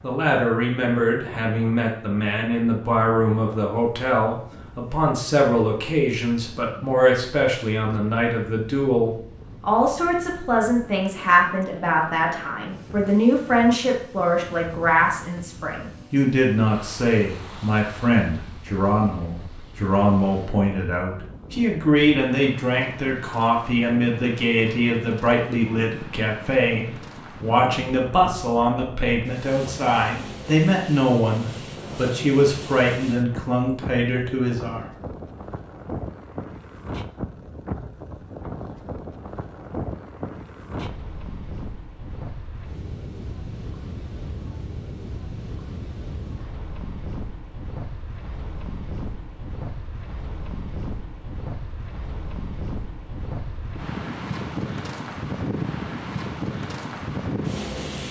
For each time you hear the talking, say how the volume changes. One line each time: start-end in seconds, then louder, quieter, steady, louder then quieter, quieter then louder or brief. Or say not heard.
0.0-34.9 steady.